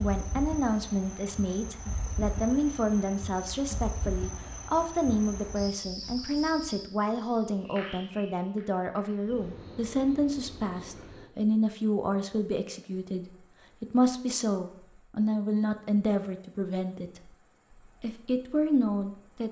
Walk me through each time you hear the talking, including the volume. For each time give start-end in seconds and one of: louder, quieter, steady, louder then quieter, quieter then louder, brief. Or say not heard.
0.0-19.4 steady.